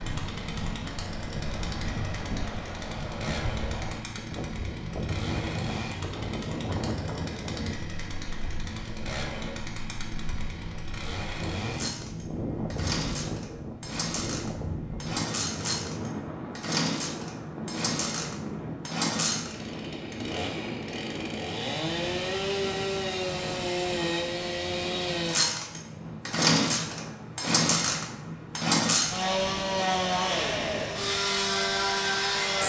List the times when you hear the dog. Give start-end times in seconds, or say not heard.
not heard.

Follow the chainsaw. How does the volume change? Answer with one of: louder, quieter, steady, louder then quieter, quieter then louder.
louder.